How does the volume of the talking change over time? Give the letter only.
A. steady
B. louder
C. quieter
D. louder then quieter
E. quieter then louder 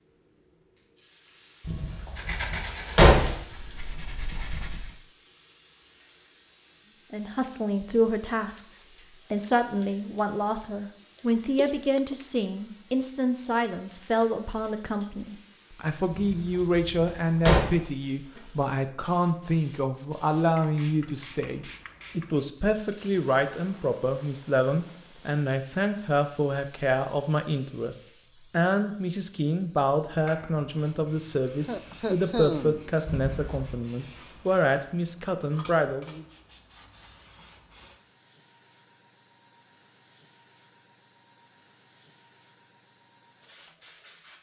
A.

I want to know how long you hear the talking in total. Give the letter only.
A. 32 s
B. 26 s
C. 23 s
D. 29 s
D.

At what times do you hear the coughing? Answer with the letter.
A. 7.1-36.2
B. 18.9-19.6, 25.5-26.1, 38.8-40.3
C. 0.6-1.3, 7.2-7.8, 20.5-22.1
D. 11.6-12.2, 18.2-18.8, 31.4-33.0
D.